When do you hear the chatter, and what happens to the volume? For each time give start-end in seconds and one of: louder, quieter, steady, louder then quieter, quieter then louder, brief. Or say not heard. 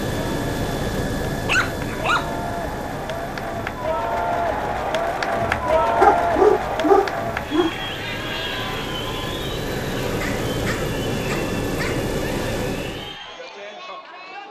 0.2-14.4 louder then quieter.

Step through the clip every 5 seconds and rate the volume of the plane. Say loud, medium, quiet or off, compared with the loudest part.
loud, medium, loud.